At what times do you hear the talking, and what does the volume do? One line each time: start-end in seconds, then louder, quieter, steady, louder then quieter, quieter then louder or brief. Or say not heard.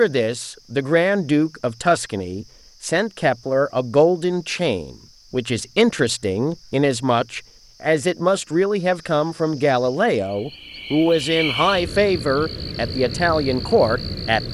0.0-14.4 steady.